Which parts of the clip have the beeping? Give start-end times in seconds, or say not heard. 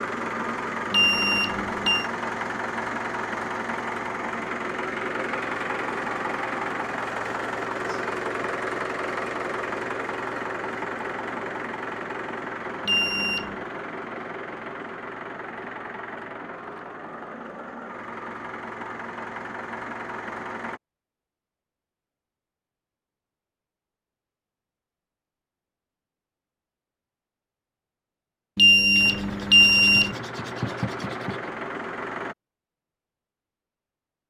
0.9-2.0, 12.8-13.6, 28.6-30.1.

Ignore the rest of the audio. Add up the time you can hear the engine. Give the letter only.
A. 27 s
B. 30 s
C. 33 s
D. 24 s
D.